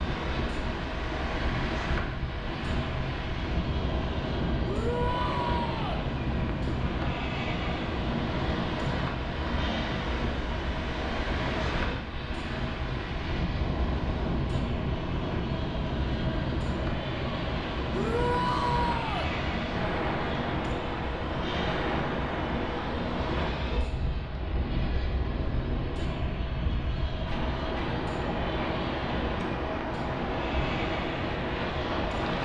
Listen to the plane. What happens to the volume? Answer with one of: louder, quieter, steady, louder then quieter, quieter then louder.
steady.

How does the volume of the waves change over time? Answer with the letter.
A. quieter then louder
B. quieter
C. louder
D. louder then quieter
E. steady
E.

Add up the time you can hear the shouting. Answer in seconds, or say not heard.
3 s.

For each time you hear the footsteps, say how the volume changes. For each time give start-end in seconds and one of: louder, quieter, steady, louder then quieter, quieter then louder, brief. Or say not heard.
not heard.